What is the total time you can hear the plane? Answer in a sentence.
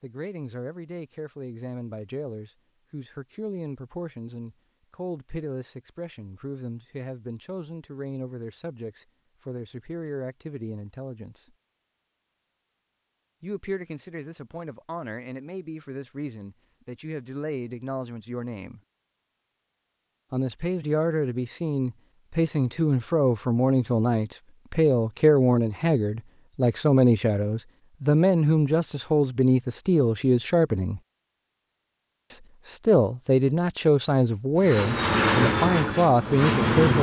The plane can be heard for 2 seconds in total.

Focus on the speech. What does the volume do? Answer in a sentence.
The volume of the speech goes up.